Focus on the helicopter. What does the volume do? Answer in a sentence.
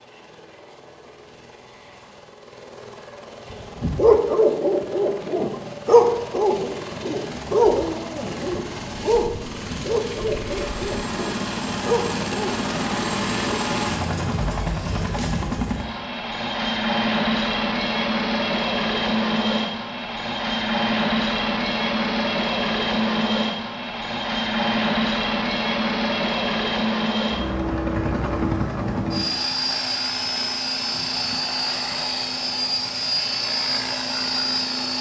The volume of the helicopter goes up.